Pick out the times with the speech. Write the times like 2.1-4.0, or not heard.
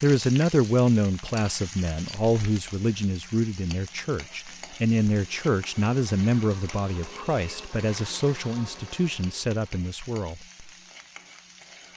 0.0-10.4.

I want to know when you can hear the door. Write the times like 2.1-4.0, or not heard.
not heard.